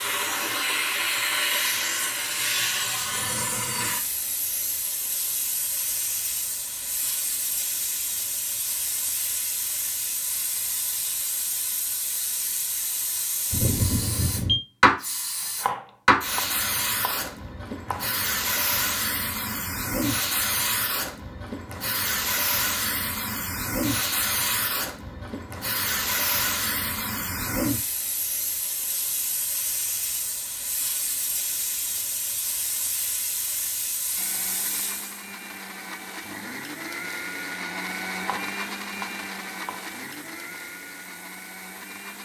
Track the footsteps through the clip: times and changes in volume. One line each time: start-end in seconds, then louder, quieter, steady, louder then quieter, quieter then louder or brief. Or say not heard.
not heard.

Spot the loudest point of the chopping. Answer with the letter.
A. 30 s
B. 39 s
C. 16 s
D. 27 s
C.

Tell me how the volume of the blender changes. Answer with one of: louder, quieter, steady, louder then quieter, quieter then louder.
louder then quieter.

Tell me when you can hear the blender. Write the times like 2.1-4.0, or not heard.
34.1-42.2.